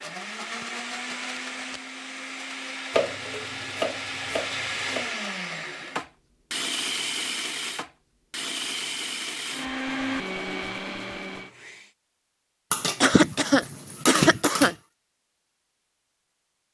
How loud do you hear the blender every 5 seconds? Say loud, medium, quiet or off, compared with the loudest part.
loud, loud, loud, off.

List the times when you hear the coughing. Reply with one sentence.
The coughing can be heard from 13.0 to 14.8 s.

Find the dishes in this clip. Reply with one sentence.
The dishes can be heard from 2.9 to 5.1 s and from 12.7 to 14.8 s.